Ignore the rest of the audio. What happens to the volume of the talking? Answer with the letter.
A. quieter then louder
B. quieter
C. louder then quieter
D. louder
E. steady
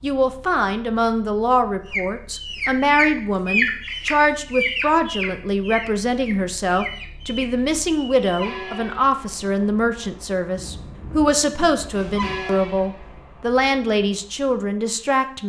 E.